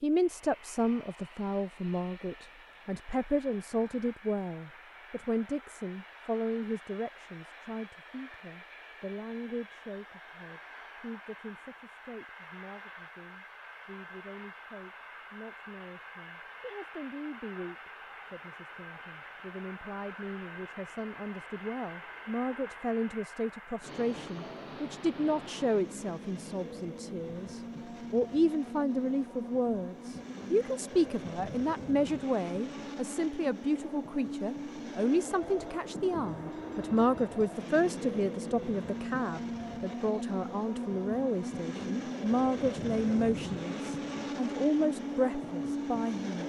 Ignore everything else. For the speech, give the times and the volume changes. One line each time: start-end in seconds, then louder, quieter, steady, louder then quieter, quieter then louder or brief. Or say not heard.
0.0-46.4 quieter then louder.